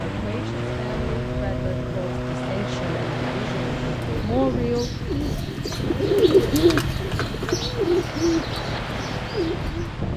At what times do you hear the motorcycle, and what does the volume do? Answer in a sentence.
The motorcycle can be heard from 0.0 to 10.1 s, getting quieter.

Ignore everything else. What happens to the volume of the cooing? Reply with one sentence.
The volume of the cooing goes up, then down.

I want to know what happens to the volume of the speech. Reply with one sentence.
The loudness of the speech goes up.